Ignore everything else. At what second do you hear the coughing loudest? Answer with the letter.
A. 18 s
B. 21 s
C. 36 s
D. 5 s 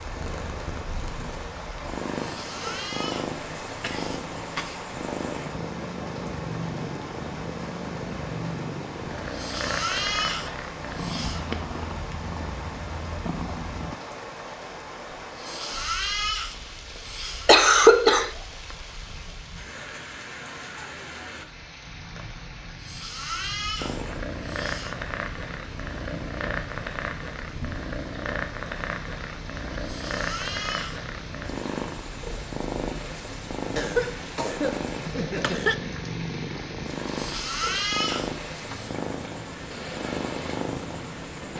A.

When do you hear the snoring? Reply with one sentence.
The snoring can be heard from 2.1 to 4.2 s, from 9.2 to 11.4 s, from 15.2 to 17.5 s, from 22.8 to 24.9 s, from 29.8 to 31.0 s and from 37.0 to 39.0 s.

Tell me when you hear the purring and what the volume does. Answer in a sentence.
The purring can be heard from 0.0 to 14.0 s, at a steady volume; and from 23.8 to 41.5 s, at a steady volume.